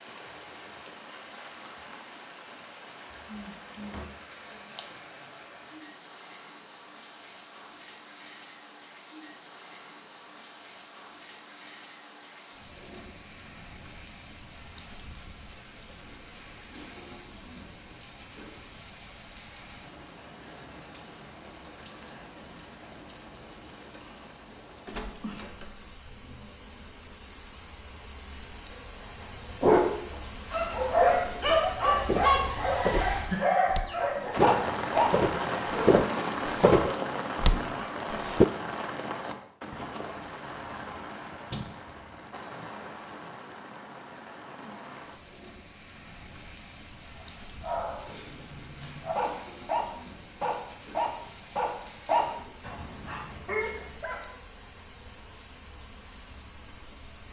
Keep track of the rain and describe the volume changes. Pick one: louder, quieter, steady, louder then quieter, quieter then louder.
louder then quieter.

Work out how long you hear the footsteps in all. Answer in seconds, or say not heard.
7 s.